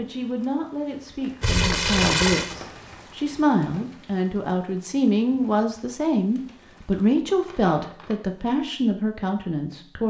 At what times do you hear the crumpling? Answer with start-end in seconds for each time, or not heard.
1.4-2.5, 6.3-8.2.